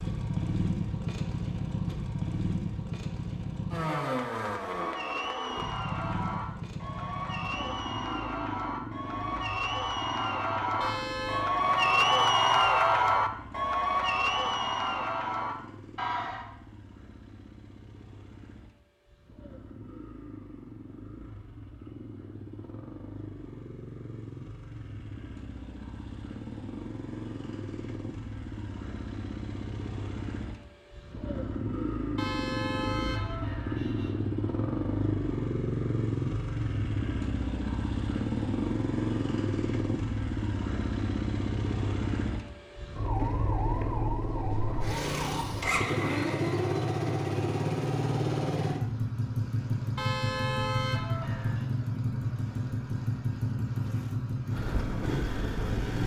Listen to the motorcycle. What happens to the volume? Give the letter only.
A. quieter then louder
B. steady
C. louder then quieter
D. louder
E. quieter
A.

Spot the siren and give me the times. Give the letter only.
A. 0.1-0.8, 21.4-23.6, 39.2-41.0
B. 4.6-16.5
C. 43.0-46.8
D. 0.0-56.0
C.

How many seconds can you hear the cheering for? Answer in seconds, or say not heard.
12 s.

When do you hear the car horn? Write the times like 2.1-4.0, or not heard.
10.8-11.5, 32.1-34.2, 50.0-51.7.